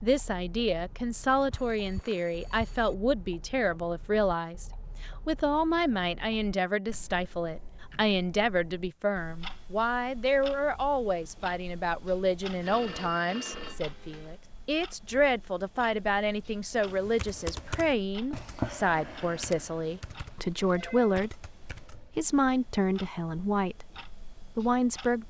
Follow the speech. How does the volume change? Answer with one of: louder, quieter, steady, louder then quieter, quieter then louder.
steady.